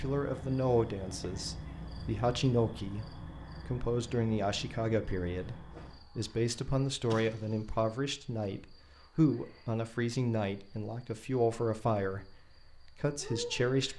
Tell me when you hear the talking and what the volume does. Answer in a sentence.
You can hear the talking from 0.0 to 13.9 s, at a steady volume.